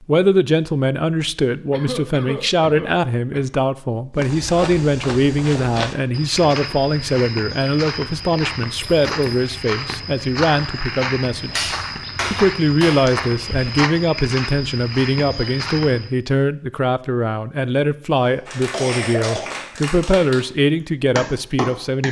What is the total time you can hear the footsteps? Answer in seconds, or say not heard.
12 s.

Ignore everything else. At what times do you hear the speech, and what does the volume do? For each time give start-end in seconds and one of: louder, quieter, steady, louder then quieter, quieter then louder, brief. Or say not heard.
0.1-22.0 steady.